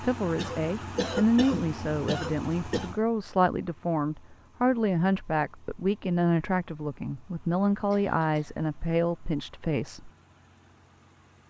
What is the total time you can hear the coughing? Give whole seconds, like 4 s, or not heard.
3 s.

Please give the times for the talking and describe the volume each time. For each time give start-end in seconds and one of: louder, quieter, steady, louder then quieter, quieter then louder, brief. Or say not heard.
0.0-10.1 steady.